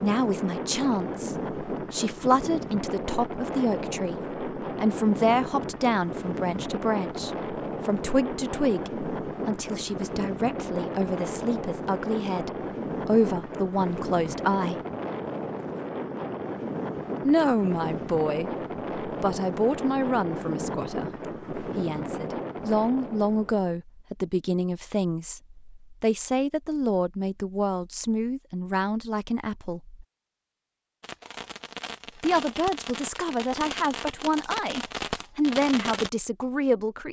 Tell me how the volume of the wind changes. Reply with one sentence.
The volume of the wind stays about the same.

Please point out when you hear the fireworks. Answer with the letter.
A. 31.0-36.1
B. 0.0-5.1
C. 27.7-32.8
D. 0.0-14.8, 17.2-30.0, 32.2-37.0
A.